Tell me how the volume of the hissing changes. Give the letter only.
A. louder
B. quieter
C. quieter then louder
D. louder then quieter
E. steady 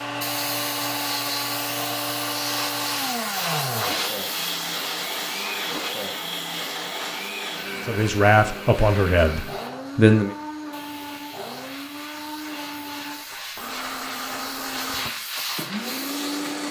C.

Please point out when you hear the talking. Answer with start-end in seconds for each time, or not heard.
7.8-10.3.